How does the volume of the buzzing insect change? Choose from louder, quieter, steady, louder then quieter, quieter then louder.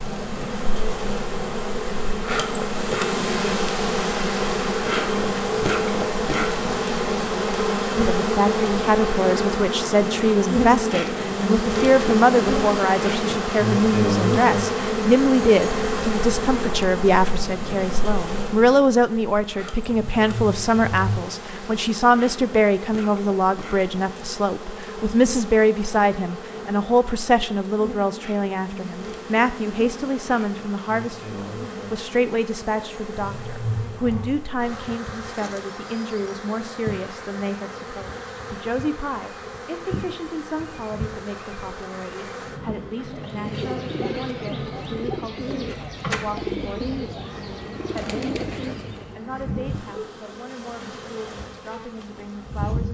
quieter.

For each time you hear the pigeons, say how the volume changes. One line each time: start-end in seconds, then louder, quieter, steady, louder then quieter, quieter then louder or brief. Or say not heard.
43.0-49.2 steady.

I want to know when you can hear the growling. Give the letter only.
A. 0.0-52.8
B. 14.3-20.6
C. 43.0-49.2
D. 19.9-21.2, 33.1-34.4
D.